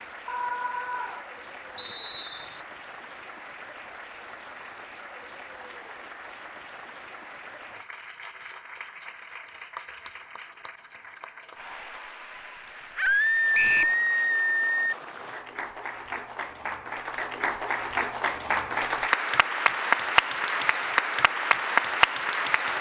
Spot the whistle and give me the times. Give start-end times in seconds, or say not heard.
1.8-2.6, 13.5-13.9.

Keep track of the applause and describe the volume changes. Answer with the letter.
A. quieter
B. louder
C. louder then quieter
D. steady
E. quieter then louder
B.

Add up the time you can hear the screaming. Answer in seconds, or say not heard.
3 s.